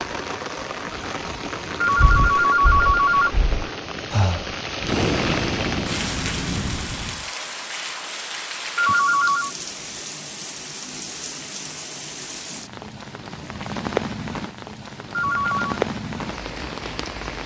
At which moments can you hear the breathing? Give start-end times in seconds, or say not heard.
1.9-7.2.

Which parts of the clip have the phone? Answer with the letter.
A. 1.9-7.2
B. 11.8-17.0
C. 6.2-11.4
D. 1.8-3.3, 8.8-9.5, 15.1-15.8
D.